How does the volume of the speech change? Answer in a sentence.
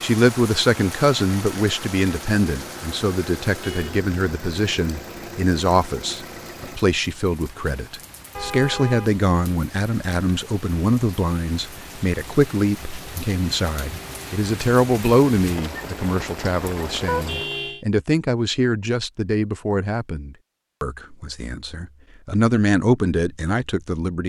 The volume of the speech stays about the same.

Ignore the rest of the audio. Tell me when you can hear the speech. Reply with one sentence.
You can hear the speech from 0.0 to 24.2 s.